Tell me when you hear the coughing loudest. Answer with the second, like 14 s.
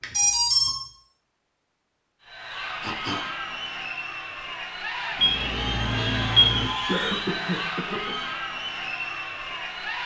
7 s.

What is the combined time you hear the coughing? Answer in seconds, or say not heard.
2 s.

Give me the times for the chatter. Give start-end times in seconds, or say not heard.
2.2-10.0.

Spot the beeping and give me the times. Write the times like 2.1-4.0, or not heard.
0.0-0.7, 5.2-6.7.